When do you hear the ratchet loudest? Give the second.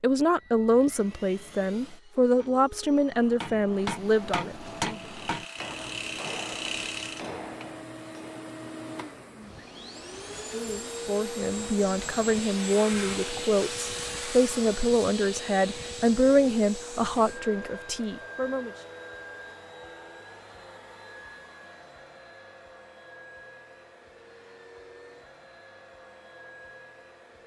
7 s.